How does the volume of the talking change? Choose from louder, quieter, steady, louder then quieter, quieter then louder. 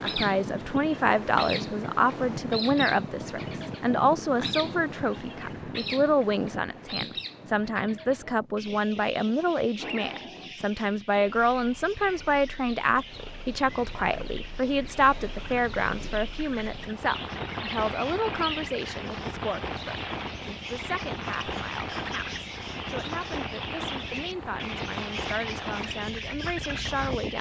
quieter.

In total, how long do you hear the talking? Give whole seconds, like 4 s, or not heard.
27 s.